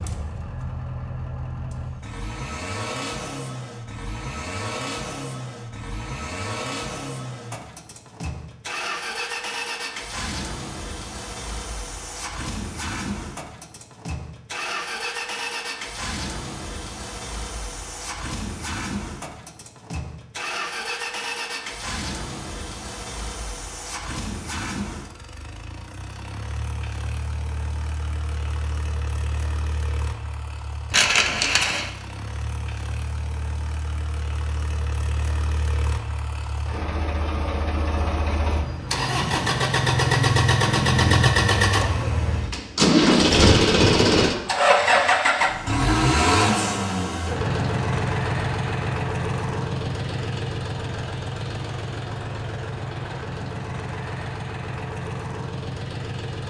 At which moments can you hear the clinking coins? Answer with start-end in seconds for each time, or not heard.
30.9-31.9.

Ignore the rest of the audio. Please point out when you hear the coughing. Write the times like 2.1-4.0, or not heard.
not heard.